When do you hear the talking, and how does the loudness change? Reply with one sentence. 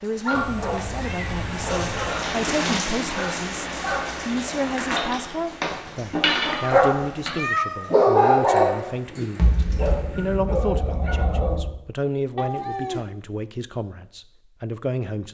The talking can be heard from 0.0 to 15.3 s, at a steady volume.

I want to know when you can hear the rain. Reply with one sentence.
You can hear the rain from 0.0 to 10.4 s.